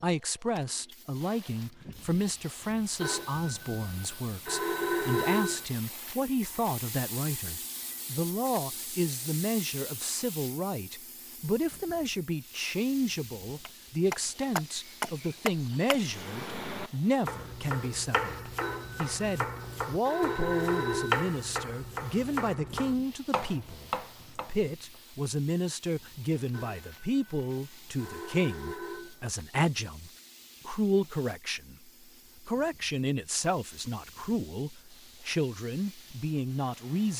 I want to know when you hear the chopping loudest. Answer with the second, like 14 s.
21 s.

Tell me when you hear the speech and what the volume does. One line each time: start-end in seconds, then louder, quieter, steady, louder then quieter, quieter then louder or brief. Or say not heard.
0.0-37.1 steady.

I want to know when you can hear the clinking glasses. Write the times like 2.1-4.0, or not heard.
not heard.